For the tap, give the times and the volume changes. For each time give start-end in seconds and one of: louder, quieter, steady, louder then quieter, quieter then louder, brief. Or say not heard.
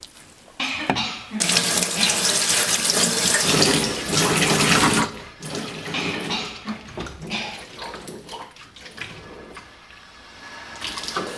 0.0-11.3 quieter.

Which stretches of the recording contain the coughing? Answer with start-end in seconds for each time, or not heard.
0.6-2.3, 5.9-7.7.